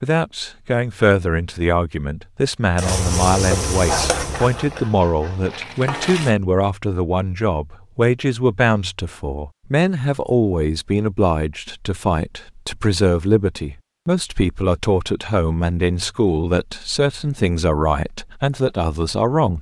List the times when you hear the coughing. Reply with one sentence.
You can't hear the coughing here.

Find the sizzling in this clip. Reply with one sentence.
You can hear the sizzling from 2.8 to 6.3 s.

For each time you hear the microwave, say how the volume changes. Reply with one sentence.
You can't hear the microwave here.